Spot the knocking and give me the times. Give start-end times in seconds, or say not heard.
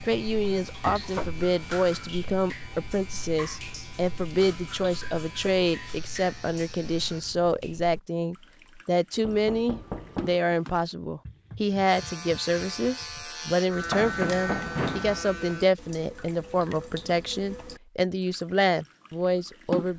0.8-1.4, 9.2-10.4, 13.9-15.2.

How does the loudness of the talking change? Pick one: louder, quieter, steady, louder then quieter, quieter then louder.
steady.